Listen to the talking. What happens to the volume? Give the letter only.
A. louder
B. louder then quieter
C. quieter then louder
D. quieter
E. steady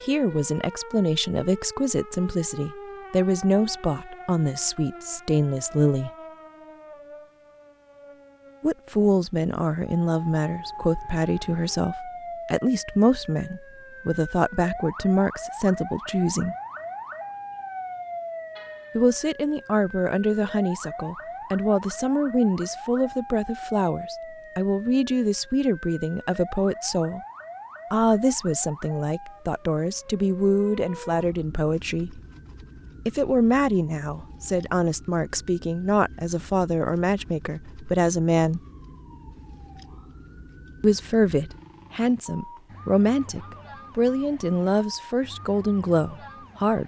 E.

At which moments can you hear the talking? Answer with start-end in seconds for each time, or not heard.
0.0-6.1, 8.6-16.6, 18.9-27.2, 27.9-32.2, 33.0-38.6, 40.8-46.8.